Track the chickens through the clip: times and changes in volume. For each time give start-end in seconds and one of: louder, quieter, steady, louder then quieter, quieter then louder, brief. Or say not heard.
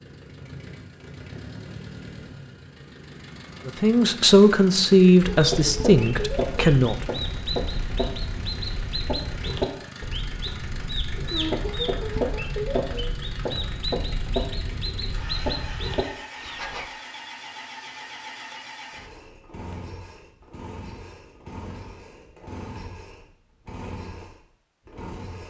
5.2-16.9 steady.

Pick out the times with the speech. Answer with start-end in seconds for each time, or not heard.
3.6-7.0.